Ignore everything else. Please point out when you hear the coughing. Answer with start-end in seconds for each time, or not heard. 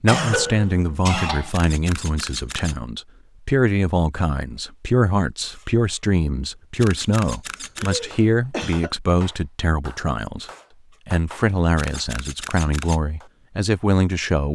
0.1-1.5, 7.8-8.9.